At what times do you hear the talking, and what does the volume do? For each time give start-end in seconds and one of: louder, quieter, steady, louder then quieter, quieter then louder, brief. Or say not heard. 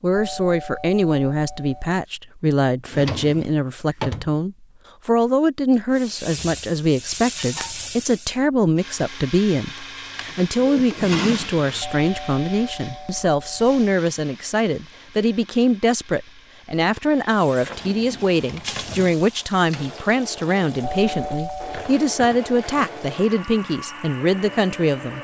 0.0-25.1 steady.